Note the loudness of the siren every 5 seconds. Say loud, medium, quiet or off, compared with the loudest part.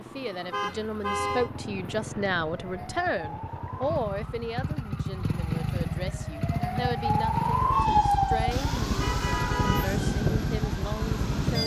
quiet, loud, loud.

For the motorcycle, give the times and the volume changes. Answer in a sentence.
The motorcycle can be heard from 0.0 to 11.6 s, getting louder.